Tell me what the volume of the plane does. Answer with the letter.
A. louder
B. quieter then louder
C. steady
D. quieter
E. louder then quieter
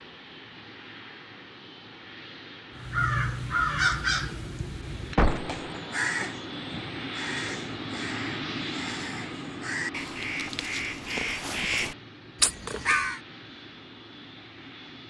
E.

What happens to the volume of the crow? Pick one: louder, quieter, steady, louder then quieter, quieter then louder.
quieter then louder.